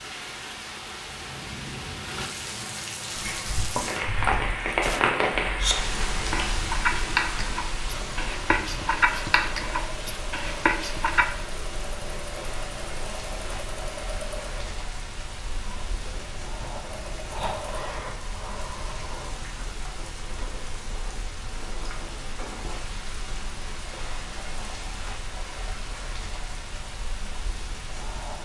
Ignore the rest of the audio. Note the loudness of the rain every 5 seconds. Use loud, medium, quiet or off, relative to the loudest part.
loud, loud, medium, medium, medium, medium.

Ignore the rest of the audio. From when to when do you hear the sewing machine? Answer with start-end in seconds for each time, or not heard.
7.8-17.9.